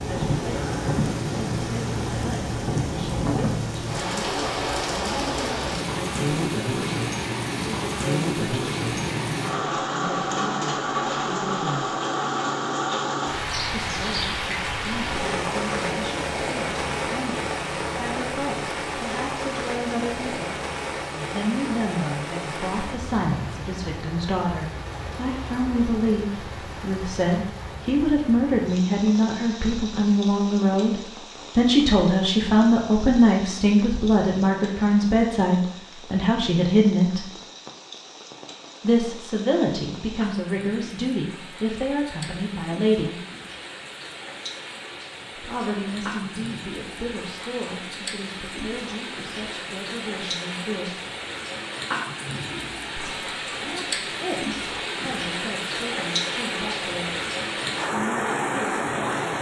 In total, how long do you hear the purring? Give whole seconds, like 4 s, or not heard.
not heard.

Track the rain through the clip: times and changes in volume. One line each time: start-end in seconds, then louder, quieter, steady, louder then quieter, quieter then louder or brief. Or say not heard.
0.0-59.3 quieter then louder.